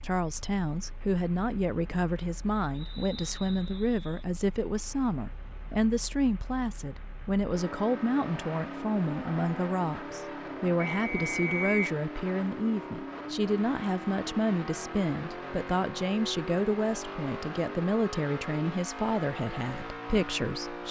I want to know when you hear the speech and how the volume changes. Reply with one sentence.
You can hear the speech from 0.0 to 20.8 s, at a steady volume.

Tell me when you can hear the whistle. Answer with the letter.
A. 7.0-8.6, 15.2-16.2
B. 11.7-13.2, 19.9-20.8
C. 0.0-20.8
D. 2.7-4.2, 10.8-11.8
D.